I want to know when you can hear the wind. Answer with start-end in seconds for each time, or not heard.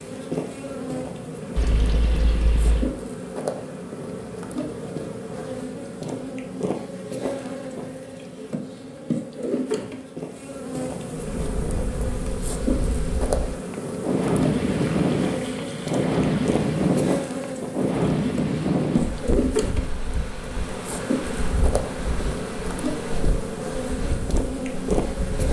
11.4-25.4.